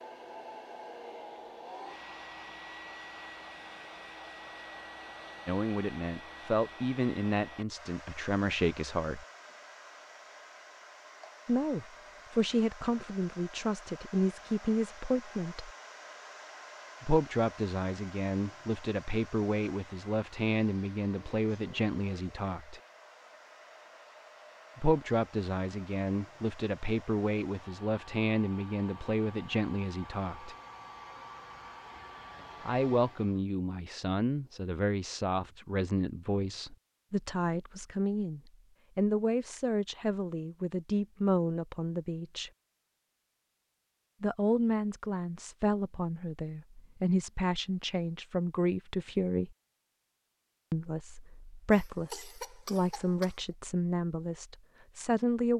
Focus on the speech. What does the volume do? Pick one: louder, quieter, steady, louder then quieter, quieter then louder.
steady.